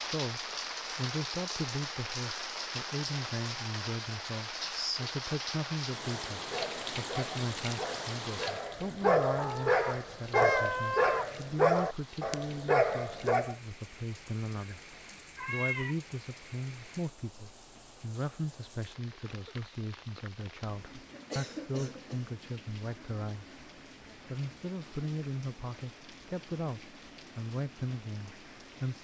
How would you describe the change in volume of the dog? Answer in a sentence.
The volume of the dog goes up.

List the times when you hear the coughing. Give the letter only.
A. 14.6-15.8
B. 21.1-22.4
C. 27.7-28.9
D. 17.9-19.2
B.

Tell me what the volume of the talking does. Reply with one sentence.
The volume of the talking stays about the same.